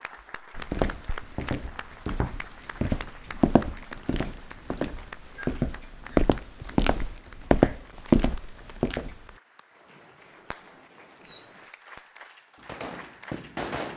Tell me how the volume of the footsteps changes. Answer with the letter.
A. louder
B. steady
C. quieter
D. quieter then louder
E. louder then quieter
A.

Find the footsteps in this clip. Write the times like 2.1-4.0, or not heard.
0.6-9.2.